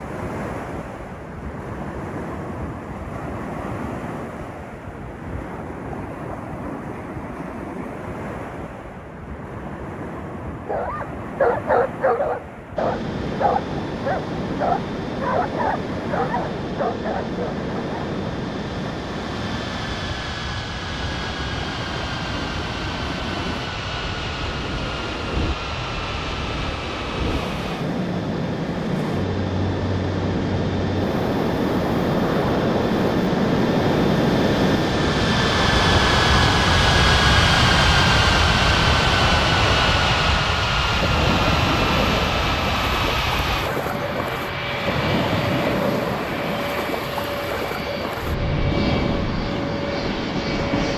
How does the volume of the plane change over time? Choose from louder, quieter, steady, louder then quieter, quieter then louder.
louder then quieter.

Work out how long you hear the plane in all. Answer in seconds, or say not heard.
38 s.